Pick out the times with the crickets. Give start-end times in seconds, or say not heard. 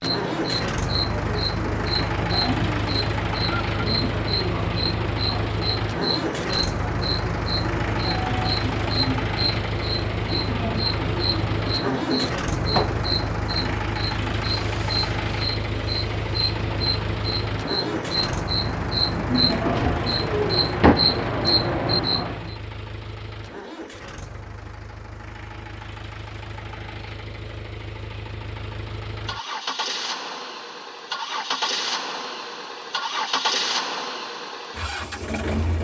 0.0-22.6.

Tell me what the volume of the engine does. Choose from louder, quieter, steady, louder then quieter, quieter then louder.
quieter then louder.